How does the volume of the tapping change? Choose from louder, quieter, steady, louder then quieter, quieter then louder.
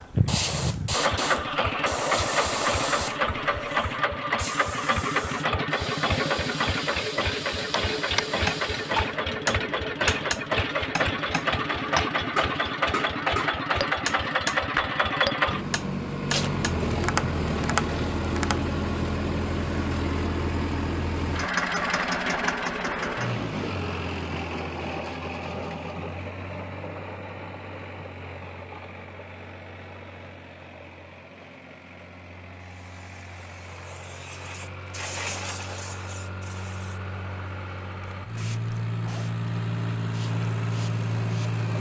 steady.